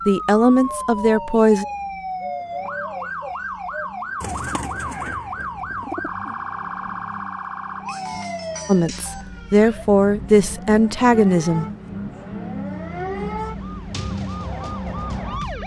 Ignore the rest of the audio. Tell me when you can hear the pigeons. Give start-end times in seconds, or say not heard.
0.7-6.3.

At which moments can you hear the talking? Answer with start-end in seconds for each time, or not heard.
0.1-1.6, 8.7-11.7.